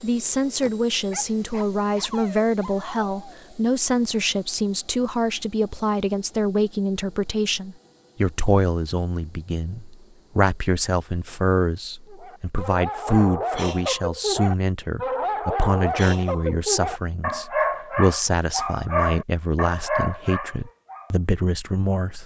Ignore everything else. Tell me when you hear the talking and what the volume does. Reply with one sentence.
The talking can be heard from 0.0 to 22.2 s, at a steady volume.